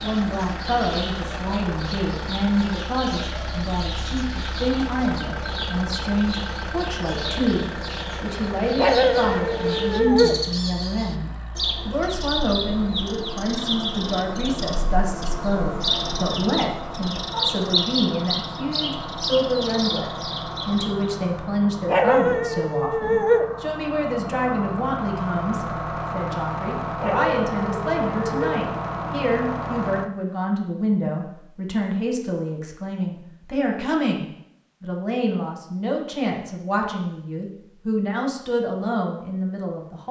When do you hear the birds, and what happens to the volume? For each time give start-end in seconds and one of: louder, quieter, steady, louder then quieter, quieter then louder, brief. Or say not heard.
0.0-21.1 louder.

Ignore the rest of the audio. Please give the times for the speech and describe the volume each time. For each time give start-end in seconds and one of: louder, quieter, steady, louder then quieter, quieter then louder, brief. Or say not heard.
0.0-40.0 steady.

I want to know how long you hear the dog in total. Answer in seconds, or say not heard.
5 s.